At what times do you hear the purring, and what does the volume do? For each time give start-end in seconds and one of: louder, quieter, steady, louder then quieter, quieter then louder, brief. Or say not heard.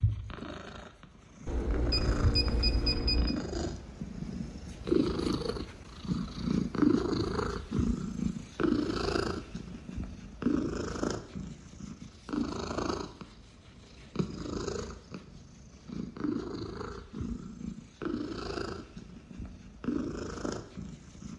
0.0-21.3 louder then quieter.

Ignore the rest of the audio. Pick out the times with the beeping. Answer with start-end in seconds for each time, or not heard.
1.4-3.4.